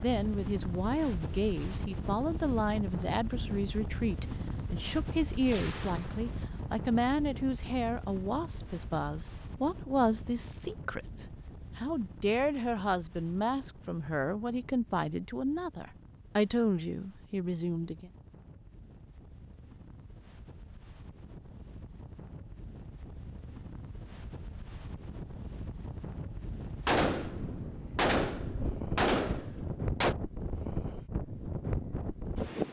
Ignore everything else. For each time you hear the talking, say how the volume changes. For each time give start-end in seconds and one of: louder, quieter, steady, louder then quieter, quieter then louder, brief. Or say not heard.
0.0-18.1 steady.